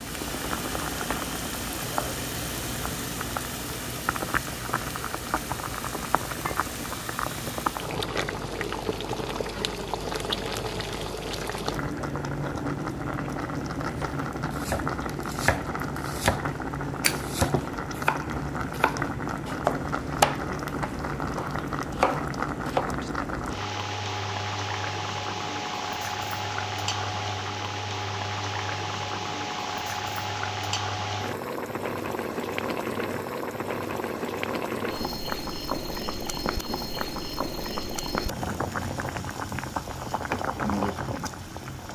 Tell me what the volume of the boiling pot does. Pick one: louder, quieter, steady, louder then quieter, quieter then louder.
steady.